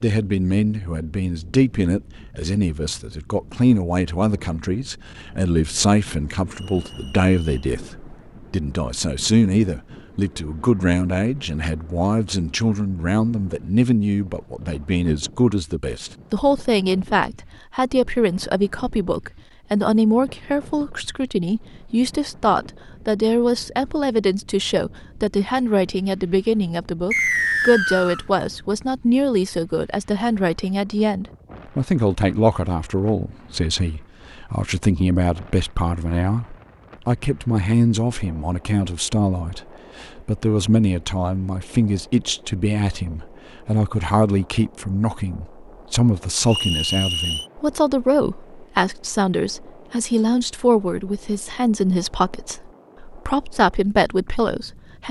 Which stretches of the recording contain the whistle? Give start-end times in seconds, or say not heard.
6.5-7.7, 27.1-28.2, 46.5-47.5.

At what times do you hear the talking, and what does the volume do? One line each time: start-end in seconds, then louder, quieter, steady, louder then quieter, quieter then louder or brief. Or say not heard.
0.0-55.0 steady.